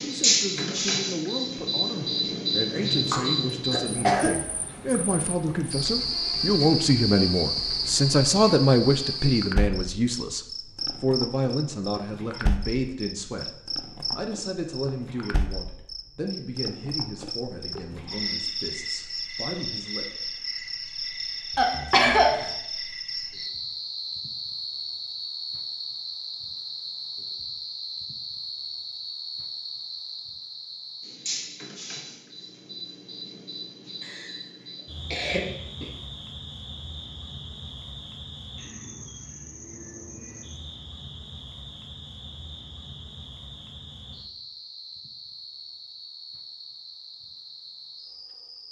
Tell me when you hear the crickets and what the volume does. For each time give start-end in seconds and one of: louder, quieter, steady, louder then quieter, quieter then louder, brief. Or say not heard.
0.0-48.6 quieter.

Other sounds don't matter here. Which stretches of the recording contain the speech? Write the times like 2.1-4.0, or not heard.
0.0-20.1.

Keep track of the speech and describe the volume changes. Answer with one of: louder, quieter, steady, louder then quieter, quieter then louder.
louder then quieter.